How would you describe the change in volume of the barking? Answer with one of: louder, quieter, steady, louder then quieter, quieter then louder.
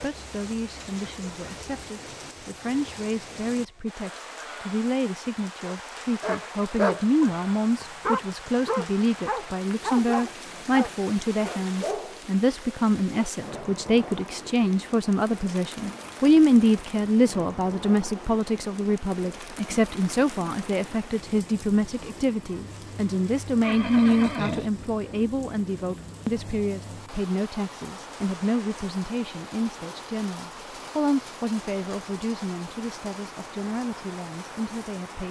quieter.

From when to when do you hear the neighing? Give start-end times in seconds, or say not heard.
23.6-24.7.